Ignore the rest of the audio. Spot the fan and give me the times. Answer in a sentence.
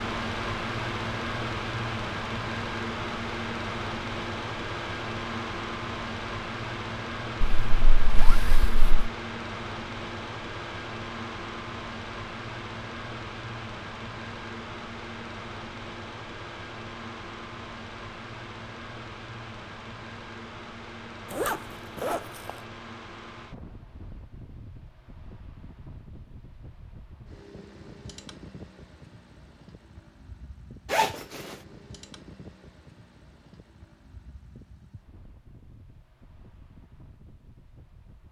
You can hear the fan from 0.0 to 38.2 s.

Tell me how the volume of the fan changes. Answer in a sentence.
The loudness of the fan goes down.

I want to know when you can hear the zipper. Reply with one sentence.
The zipper can be heard from 7.4 to 9.1 s, from 21.3 to 22.6 s and from 30.9 to 31.6 s.